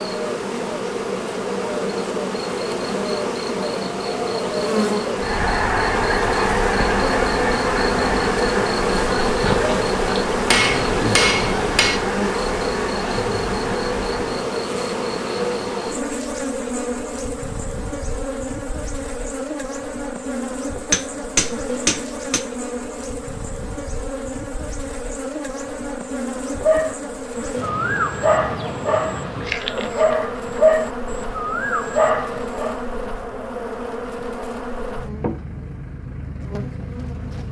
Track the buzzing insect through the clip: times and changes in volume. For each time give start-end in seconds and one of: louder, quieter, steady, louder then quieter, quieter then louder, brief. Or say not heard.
0.0-37.4 quieter.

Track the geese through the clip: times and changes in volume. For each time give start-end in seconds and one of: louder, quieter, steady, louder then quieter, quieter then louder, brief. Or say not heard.
5.2-14.4 quieter.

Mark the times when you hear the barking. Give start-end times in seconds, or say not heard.
26.5-32.8.